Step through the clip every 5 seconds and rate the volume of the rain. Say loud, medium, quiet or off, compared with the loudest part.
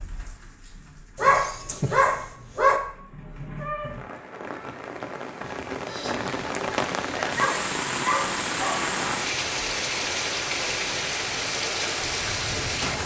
quiet, loud, loud.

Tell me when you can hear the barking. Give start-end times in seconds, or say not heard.
1.1-2.8, 7.2-8.9.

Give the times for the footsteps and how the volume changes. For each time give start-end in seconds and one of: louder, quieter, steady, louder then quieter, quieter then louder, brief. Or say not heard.
not heard.